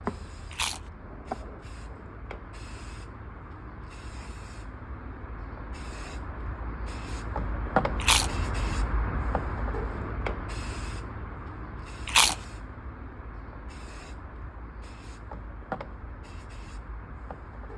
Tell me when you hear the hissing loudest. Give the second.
8 s.